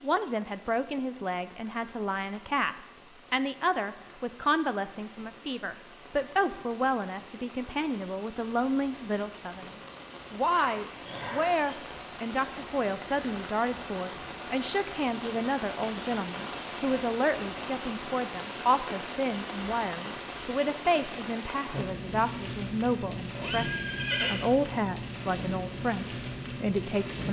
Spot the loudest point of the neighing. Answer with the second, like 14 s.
24 s.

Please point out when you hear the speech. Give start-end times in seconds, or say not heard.
0.0-9.7, 10.3-27.2.